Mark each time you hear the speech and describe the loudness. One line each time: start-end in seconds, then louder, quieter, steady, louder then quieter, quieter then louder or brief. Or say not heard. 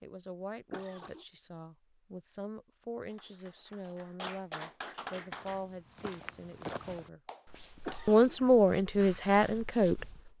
0.0-7.2 steady
8.1-10.3 brief.